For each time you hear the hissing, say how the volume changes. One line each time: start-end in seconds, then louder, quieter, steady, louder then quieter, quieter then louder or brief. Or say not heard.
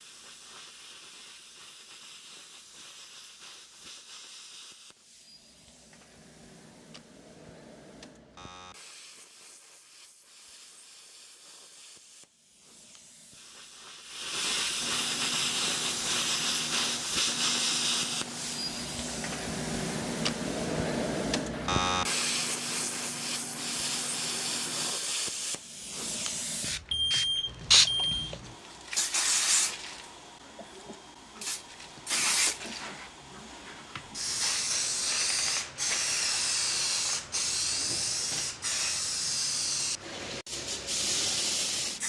0.0-42.0 louder.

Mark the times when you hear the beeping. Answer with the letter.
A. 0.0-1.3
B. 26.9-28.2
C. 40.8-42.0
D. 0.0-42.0
B.